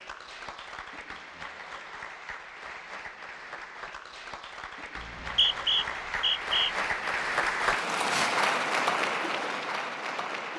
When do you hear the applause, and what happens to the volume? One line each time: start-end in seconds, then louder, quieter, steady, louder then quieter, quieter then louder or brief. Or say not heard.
0.0-10.5 louder.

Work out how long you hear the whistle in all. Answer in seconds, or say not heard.
2 s.